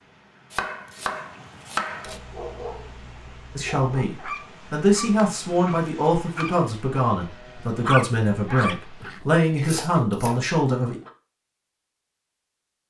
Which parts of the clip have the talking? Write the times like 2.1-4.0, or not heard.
3.5-11.0.